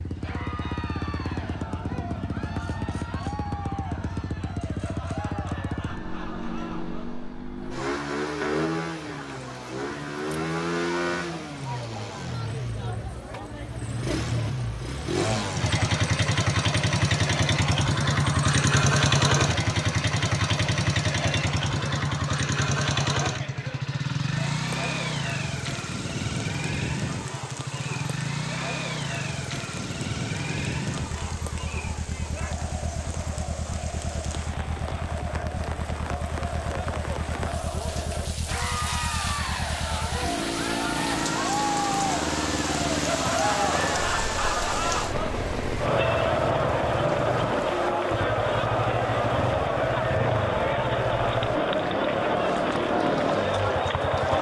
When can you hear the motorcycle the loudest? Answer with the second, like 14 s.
19 s.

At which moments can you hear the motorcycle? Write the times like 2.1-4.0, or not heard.
0.0-54.3.